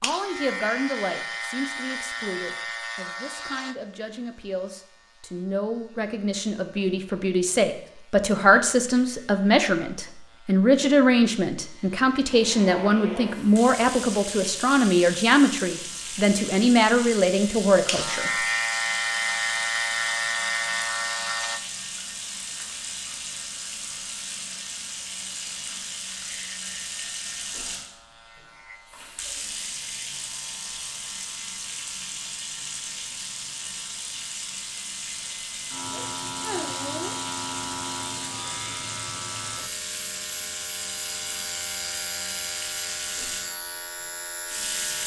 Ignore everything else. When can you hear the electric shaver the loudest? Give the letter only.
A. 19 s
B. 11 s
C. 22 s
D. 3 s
A.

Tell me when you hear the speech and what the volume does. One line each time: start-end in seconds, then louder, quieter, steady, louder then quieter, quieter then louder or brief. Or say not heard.
0.0-18.3 louder.